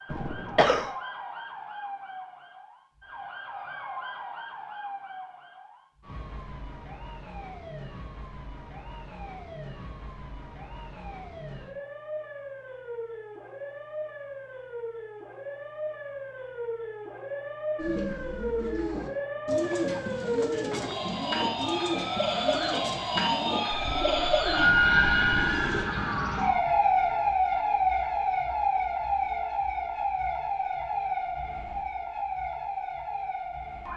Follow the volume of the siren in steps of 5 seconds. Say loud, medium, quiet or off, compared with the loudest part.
quiet, quiet, quiet, medium, loud, loud, medium.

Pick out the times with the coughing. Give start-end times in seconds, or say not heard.
0.1-0.9, 19.7-20.9.